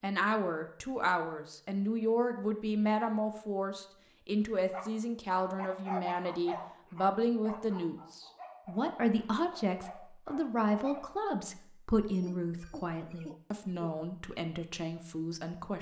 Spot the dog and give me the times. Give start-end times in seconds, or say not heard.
4.7-11.2.